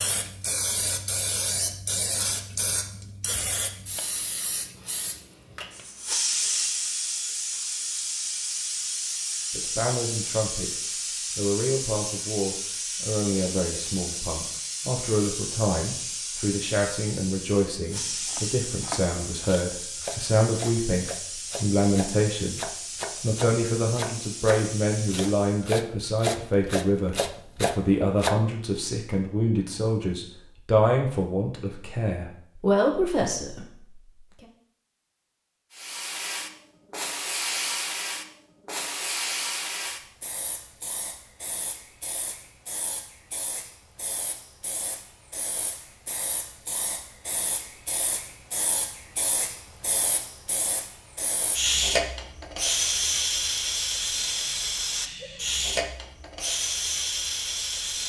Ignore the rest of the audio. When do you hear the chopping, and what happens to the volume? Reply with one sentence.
The chopping can be heard from 18.2 to 28.4 s, getting louder.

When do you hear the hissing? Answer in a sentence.
You can hear the hissing from 0.0 to 25.7 s and from 35.7 to 58.0 s.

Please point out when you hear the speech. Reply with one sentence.
You can hear the speech from 9.5 to 22.6 s and from 23.2 to 34.5 s.